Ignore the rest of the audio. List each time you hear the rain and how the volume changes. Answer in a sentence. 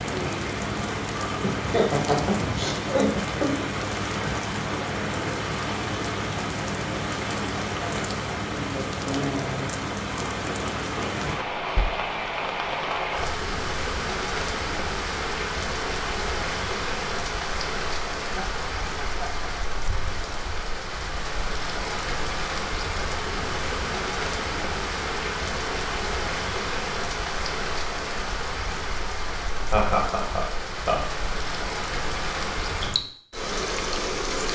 You can hear the rain from 0.0 to 34.5 s, at a steady volume.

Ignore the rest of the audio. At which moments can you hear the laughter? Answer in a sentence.
The laughter can be heard from 1.4 to 3.6 s, from 18.4 to 19.7 s and from 29.7 to 31.0 s.